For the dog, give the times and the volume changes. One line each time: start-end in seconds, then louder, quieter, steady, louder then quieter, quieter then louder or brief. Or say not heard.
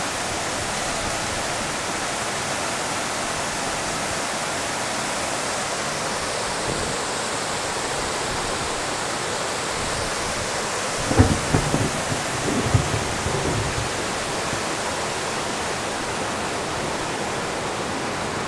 not heard.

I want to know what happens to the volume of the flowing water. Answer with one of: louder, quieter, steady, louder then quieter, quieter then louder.
steady.